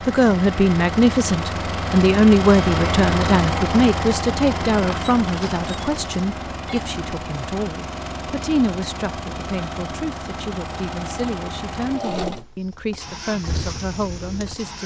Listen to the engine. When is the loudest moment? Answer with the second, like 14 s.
3 s.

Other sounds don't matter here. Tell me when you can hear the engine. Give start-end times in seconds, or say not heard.
0.0-14.8.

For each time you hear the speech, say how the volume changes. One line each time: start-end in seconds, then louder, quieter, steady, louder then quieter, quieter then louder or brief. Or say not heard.
0.0-14.8 quieter.